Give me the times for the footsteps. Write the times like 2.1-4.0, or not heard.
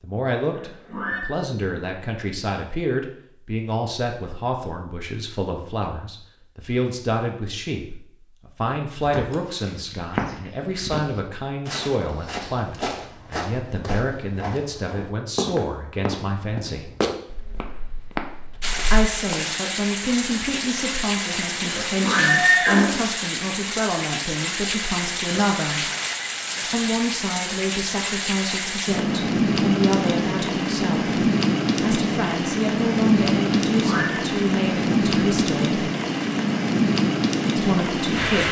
8.9-19.4.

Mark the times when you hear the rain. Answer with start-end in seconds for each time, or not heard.
18.6-38.4.